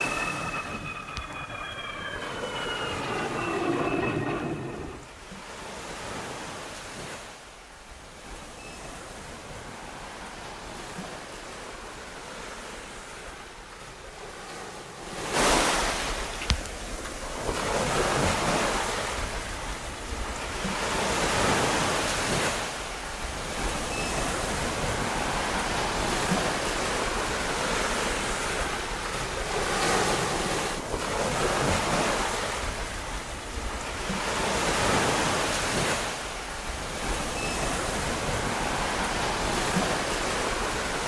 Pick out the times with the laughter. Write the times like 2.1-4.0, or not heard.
not heard.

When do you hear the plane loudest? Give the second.
4 s.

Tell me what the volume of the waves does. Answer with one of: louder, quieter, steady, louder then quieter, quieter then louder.
louder.